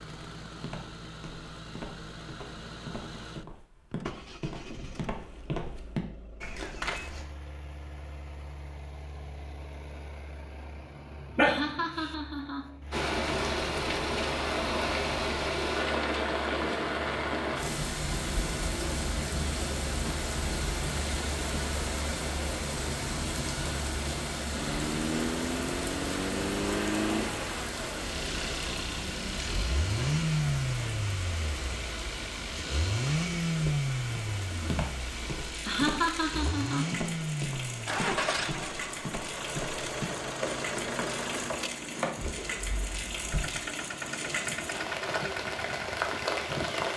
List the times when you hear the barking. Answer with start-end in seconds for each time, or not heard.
11.3-12.1.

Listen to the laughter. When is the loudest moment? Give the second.
36 s.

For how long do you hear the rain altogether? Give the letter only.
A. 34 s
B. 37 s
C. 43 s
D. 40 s
A.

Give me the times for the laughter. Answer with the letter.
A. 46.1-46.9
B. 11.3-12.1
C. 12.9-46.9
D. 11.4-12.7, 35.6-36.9
D.